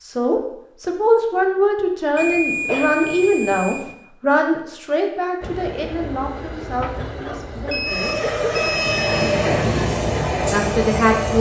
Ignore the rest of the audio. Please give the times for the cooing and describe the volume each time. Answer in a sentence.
The cooing can't be heard in this clip.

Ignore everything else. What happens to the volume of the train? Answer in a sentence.
The volume of the train goes up.